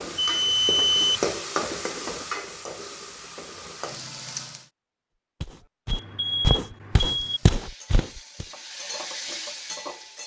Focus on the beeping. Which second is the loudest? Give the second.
1 s.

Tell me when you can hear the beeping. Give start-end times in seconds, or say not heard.
0.1-1.2, 5.9-7.4.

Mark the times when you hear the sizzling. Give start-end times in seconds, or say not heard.
0.0-4.7, 7.0-10.2.